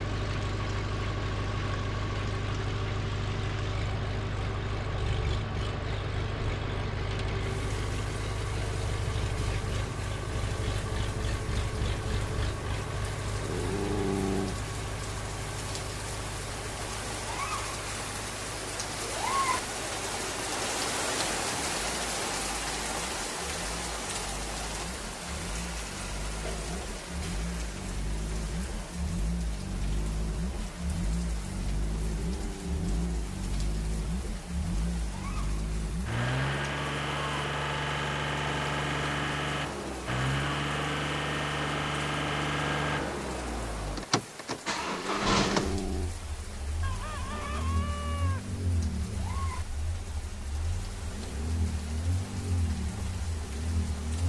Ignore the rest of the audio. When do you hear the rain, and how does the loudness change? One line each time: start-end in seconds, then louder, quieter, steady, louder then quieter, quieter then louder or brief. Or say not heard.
0.0-54.2 louder then quieter.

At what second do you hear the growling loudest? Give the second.
14 s.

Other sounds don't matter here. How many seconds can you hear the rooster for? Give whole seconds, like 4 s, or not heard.
2 s.